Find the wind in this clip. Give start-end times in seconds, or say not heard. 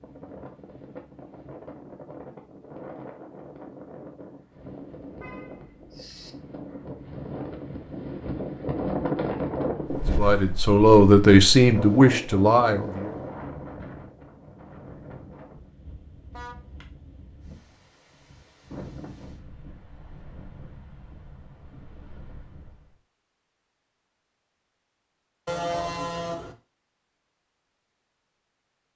0.0-23.0.